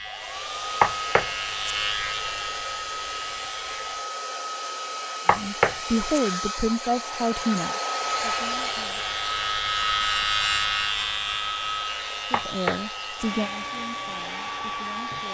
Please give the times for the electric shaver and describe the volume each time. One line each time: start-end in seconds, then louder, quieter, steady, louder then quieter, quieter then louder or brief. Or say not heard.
0.0-4.1 louder then quieter
8.0-15.3 louder then quieter.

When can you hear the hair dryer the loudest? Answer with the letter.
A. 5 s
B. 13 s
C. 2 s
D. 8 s
D.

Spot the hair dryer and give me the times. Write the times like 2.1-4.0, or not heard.
0.0-15.3.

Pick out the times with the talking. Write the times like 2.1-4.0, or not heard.
5.2-9.1, 12.3-15.3.